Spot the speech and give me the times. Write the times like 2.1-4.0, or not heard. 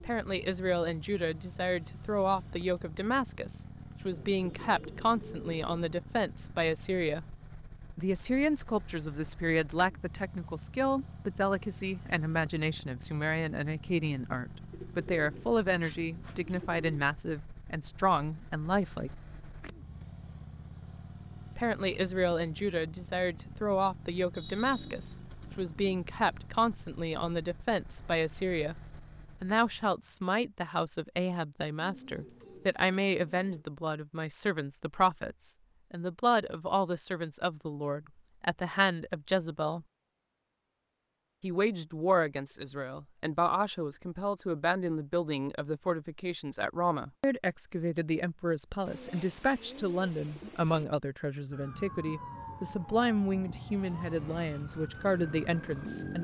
0.0-7.2, 8.0-19.1, 21.6-28.8, 29.4-39.9, 41.4-56.1.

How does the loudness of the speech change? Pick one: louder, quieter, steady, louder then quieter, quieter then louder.
steady.